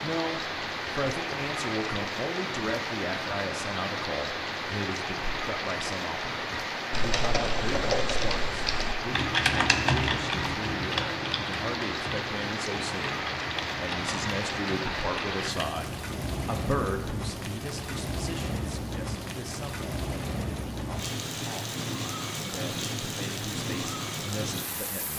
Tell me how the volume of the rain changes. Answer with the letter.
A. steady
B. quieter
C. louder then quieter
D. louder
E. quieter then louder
A.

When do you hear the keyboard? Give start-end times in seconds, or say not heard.
6.9-15.8.